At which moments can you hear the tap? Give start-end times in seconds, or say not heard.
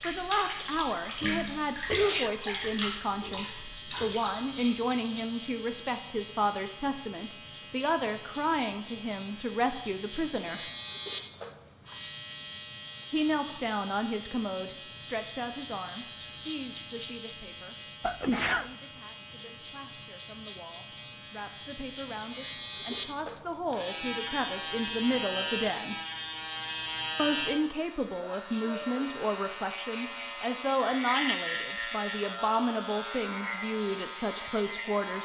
0.0-4.7.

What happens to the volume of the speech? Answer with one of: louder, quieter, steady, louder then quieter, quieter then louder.
quieter then louder.